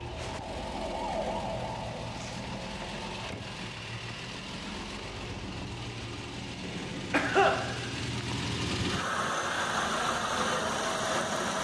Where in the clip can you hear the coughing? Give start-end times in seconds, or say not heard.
6.6-7.5.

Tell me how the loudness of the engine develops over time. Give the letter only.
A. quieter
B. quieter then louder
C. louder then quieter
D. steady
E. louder
E.